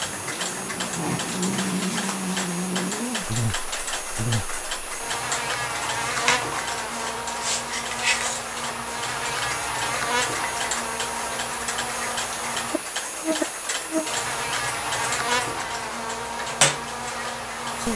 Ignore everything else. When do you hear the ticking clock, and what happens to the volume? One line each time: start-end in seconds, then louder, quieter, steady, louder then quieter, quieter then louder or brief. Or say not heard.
0.0-17.9 steady.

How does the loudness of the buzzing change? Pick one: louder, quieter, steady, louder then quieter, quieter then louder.
steady.